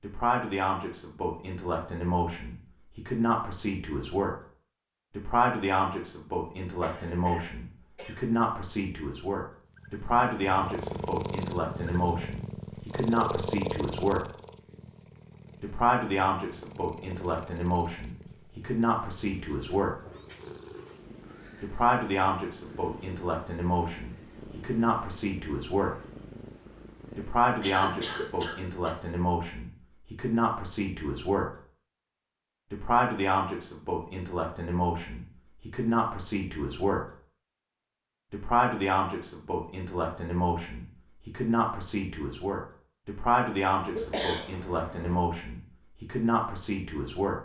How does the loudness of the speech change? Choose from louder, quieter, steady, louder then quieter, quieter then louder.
steady.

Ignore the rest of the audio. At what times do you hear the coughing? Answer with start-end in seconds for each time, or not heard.
6.8-8.2, 27.6-28.9, 43.8-45.1.